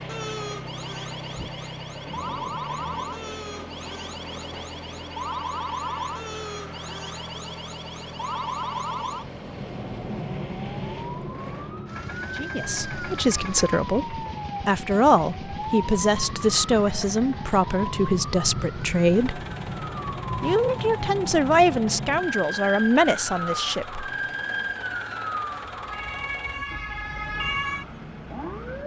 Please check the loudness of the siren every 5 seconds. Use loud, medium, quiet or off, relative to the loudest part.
medium, loud, loud, loud, loud, loud.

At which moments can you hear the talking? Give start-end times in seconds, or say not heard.
12.3-19.4, 20.4-24.1.